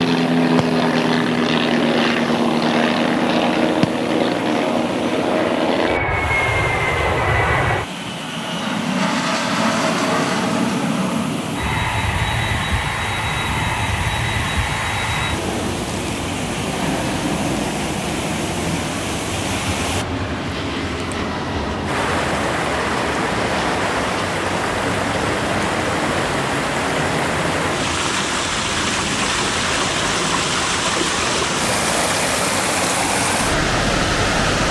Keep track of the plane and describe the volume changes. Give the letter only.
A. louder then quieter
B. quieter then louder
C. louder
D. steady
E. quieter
E.